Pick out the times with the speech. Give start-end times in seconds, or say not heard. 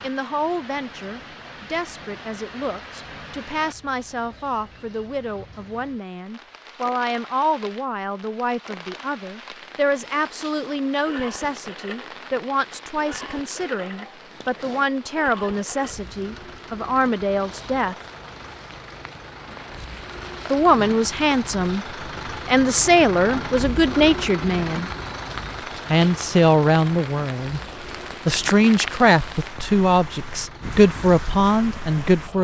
0.0-17.9, 20.5-21.9, 22.4-24.9, 25.9-27.6, 28.2-32.3.